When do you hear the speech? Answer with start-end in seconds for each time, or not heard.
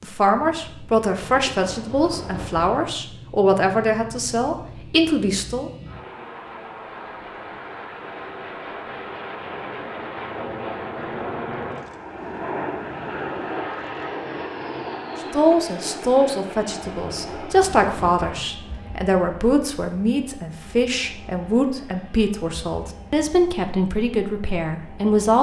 0.0-5.7, 15.3-25.3.